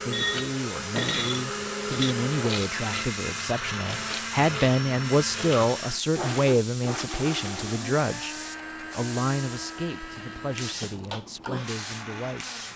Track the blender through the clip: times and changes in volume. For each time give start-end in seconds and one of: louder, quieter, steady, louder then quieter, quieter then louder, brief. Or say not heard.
0.0-12.7 quieter.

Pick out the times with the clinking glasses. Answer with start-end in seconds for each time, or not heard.
0.1-2.1.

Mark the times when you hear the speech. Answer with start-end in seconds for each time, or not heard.
0.1-12.6.